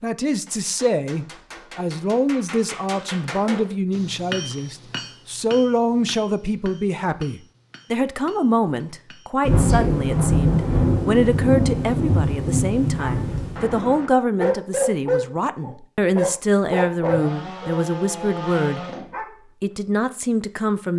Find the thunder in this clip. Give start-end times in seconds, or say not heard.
9.4-13.7.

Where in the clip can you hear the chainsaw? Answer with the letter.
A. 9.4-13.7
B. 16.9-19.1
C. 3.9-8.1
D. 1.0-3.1
B.